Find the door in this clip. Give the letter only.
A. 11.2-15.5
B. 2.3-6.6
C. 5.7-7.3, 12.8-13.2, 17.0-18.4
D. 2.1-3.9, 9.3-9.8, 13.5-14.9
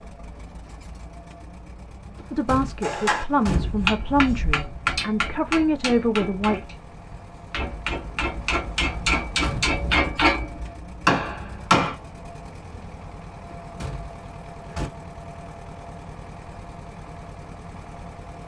D.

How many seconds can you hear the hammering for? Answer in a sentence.
You can hear the hammering for 9 seconds altogether.